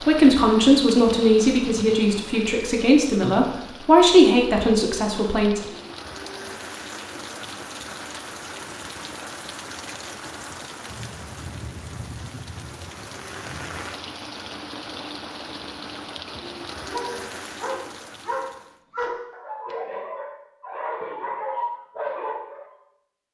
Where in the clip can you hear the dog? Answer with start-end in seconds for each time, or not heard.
16.9-22.8.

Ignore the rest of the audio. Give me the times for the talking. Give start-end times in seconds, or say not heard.
0.0-5.6.